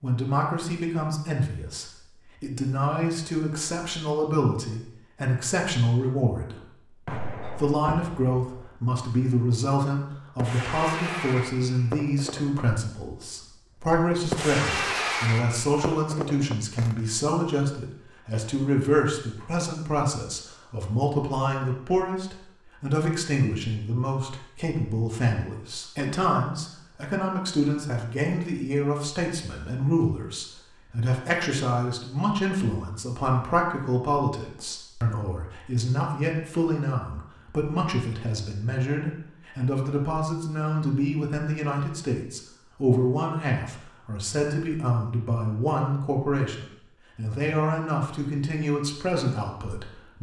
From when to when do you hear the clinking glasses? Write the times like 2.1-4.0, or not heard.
not heard.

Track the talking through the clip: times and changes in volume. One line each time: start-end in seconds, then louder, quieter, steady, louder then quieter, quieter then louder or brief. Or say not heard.
0.0-50.1 steady.